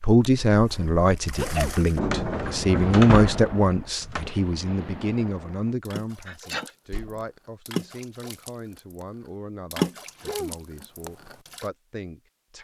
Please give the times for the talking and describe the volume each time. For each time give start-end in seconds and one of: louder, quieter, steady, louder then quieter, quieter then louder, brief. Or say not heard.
0.0-12.6 quieter.